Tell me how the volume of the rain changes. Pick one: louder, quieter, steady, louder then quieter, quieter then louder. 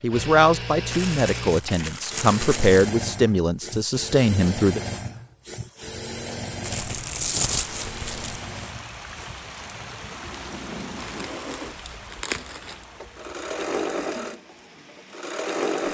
quieter.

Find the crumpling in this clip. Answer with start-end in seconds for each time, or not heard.
0.9-2.9, 6.6-8.4, 10.9-12.8.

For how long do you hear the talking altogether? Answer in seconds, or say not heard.
5 s.